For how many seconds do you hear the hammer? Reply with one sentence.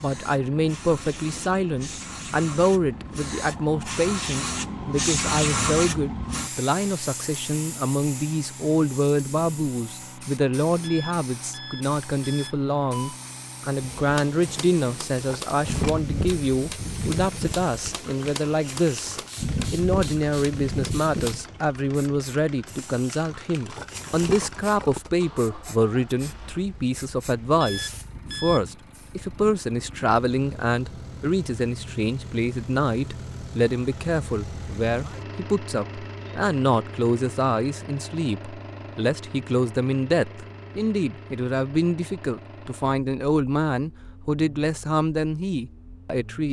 The hammer can be heard for 8 seconds in total.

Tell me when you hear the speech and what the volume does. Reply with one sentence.
The speech can be heard from 0.0 to 46.4 s, at a steady volume.